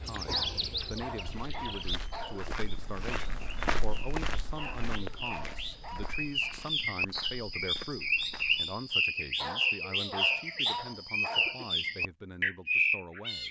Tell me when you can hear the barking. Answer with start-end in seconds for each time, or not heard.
0.2-2.5, 4.5-6.5, 9.3-11.8.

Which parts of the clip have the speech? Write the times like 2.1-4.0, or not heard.
0.0-13.4.